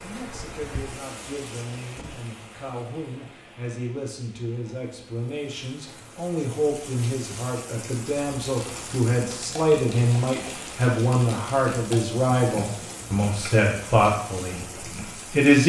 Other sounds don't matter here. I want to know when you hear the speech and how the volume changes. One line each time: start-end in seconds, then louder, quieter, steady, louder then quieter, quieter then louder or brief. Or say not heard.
0.0-15.6 louder.